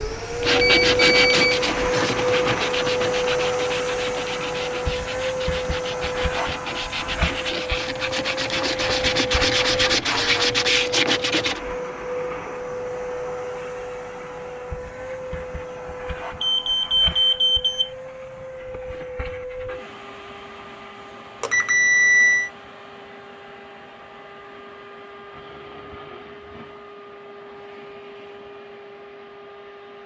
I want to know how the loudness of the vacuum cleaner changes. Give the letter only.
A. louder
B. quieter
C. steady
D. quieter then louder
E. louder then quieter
B.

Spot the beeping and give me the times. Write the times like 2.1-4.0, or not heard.
0.6-1.6, 16.4-17.9, 21.4-22.5.